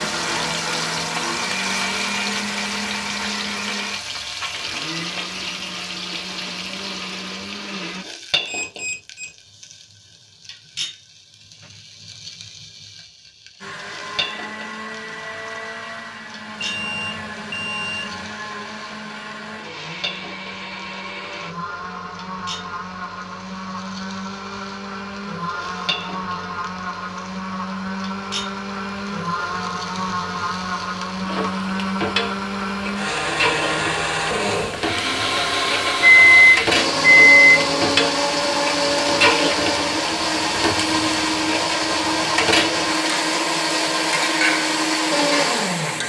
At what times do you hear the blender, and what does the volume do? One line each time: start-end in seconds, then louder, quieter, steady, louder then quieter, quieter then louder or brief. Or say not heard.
0.0-8.1 quieter
13.6-46.0 louder.